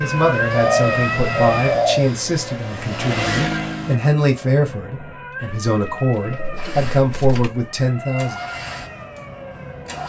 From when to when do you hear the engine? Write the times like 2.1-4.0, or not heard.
0.0-4.0, 6.5-10.0.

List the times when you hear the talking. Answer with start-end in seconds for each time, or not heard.
0.0-8.4.